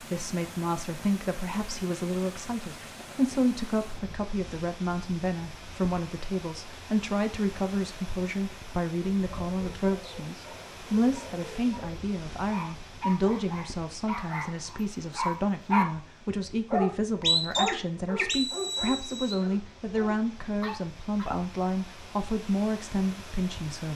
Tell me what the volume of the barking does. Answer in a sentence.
The loudness of the barking goes up, then down.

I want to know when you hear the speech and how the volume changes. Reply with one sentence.
You can hear the speech from 0.0 to 23.9 s, at a steady volume.